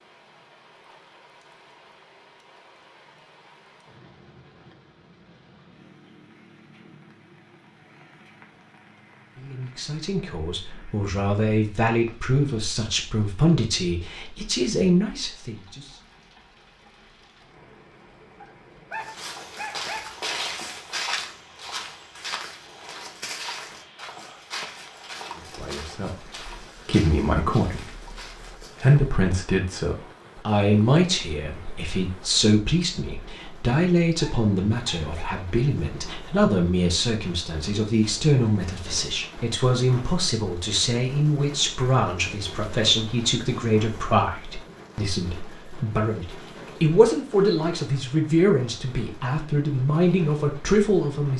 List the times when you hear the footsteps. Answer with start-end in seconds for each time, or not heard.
18.9-29.1.